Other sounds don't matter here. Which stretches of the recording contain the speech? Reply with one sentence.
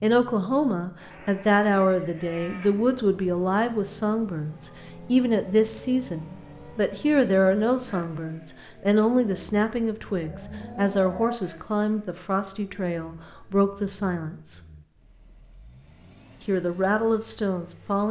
You can hear the speech from 0.0 to 14.6 s and from 16.4 to 18.0 s.